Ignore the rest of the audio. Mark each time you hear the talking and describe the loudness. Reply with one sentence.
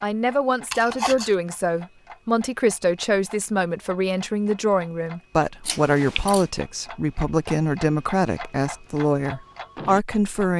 You can hear the talking from 0.0 to 10.5 s, at a steady volume.